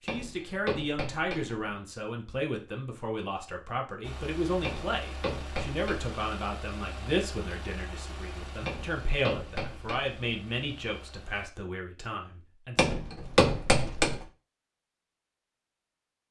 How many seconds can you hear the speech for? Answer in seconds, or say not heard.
13 s.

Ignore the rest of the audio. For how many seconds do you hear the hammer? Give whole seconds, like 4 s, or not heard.
6 s.